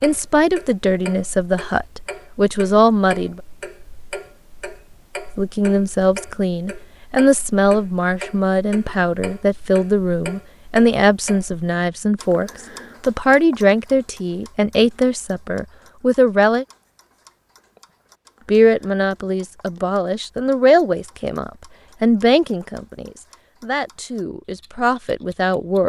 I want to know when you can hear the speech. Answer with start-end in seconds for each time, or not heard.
0.0-3.4, 5.3-16.6, 18.4-25.8.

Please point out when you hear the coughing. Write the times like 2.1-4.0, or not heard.
not heard.